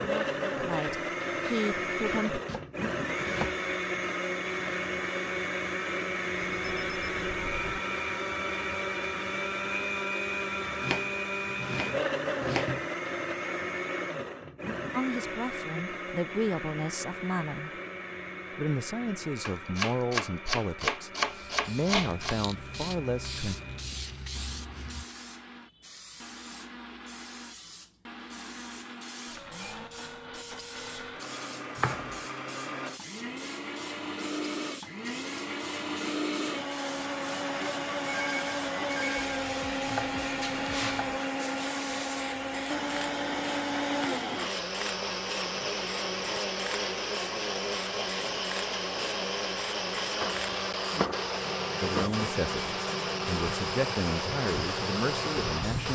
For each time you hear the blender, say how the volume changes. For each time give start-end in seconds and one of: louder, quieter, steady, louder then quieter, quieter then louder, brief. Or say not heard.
0.0-55.9 quieter then louder.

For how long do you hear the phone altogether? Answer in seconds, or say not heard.
3 s.